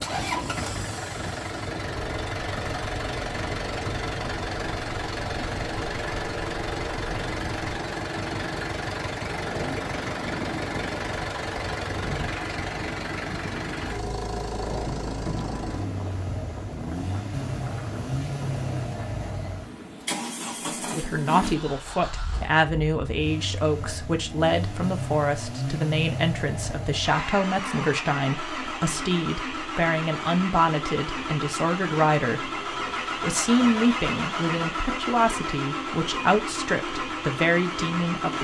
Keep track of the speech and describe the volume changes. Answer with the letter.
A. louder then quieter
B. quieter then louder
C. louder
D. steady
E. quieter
D.